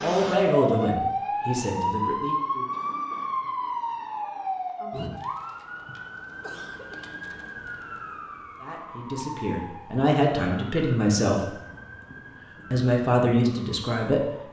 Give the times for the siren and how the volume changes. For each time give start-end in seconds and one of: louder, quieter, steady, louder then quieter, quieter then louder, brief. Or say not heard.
0.0-14.4 quieter.